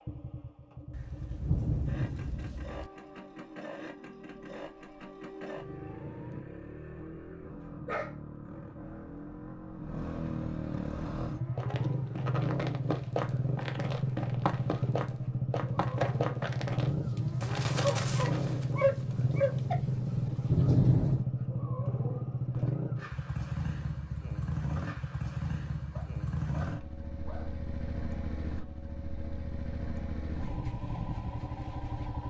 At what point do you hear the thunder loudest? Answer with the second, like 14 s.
21 s.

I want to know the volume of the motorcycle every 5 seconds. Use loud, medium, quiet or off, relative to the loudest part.
quiet, medium, loud, loud, loud, medium, medium.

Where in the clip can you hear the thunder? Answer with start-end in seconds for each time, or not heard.
0.9-2.9, 16.9-21.2.